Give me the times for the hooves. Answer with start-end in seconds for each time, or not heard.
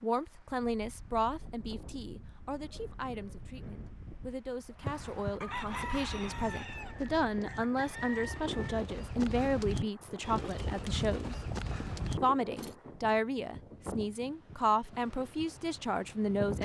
4.8-12.8.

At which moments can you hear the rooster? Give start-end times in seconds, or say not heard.
5.4-8.8.